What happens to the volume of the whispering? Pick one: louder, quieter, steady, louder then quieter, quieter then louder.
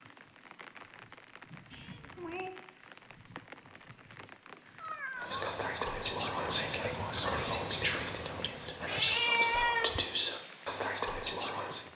quieter then louder.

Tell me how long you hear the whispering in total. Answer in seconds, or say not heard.
7 s.